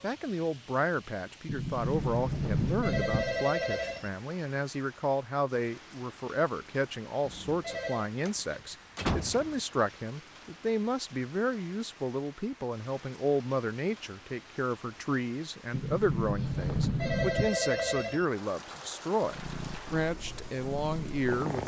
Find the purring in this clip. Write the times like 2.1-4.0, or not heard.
19.2-21.6.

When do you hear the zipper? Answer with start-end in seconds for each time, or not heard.
not heard.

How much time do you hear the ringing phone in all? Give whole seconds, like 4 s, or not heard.
4 s.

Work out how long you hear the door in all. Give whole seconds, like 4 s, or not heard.
5 s.